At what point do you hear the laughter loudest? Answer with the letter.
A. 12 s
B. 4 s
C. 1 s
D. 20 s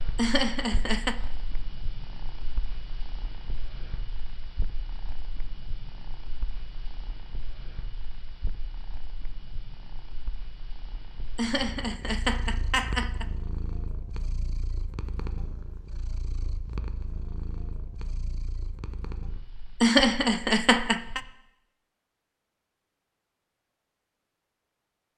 D.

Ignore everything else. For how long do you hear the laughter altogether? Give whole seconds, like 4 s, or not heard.
4 s.